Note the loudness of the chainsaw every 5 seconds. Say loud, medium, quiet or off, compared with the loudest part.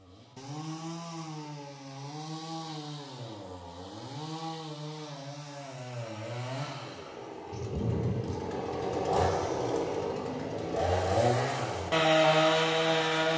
quiet, medium, loud.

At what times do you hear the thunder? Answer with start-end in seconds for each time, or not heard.
7.5-8.5.